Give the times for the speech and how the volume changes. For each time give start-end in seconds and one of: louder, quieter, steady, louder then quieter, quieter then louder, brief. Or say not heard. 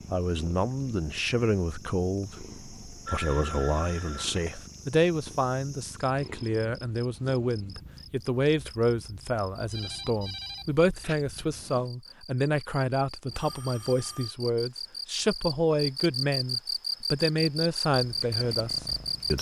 0.1-19.3 steady.